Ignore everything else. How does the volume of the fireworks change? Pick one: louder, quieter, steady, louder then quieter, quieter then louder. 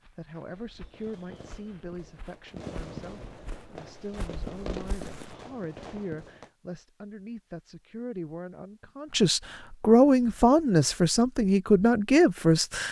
louder then quieter.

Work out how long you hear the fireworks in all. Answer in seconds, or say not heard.
6 s.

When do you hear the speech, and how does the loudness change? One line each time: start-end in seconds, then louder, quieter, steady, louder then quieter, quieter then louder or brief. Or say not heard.
0.1-12.8 louder.